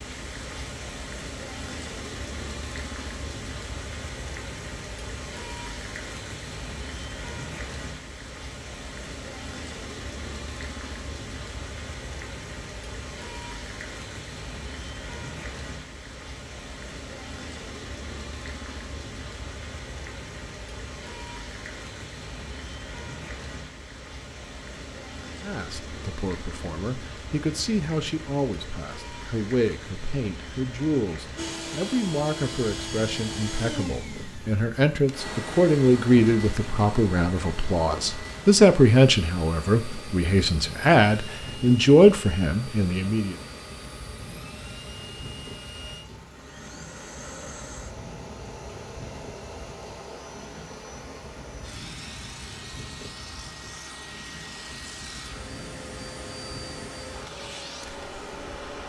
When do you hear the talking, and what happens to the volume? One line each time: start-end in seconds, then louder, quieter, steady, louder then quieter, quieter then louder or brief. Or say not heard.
25.4-43.4 louder.